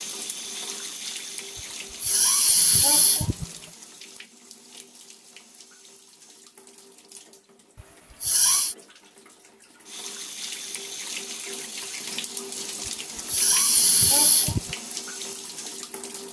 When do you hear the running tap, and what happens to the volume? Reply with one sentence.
The running tap can be heard from 0.0 to 16.2 s, getting quieter then louder.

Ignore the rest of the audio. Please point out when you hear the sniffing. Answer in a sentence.
The sniffing can be heard from 2.0 to 3.5 s, from 8.2 to 8.8 s and from 13.2 to 14.8 s.